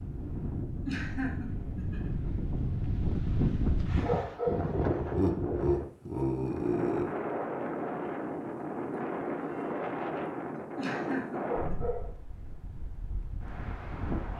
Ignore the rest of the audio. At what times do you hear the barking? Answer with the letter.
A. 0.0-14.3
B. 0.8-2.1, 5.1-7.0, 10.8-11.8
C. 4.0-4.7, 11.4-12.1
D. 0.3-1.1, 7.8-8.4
C.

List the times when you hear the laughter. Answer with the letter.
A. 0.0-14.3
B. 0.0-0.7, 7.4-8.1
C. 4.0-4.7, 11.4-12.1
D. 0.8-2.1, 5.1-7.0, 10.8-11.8
D.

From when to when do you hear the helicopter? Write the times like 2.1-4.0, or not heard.
not heard.